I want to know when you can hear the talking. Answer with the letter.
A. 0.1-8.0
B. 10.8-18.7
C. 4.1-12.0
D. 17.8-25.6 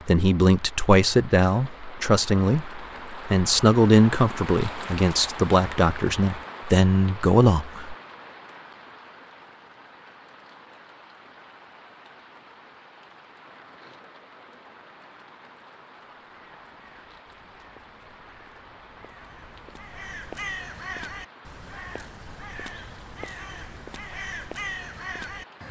A.